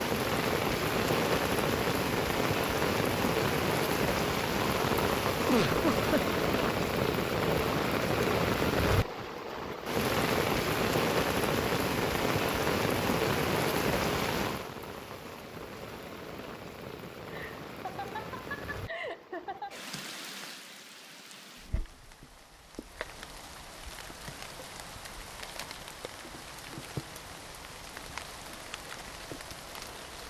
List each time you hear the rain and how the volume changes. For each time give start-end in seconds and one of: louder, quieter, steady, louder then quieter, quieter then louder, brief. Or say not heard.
0.0-30.2 quieter.